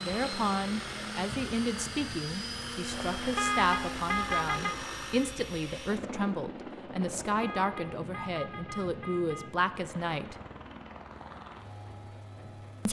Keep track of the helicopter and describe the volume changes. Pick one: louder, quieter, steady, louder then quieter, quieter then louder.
quieter.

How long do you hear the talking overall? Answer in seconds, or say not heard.
10 s.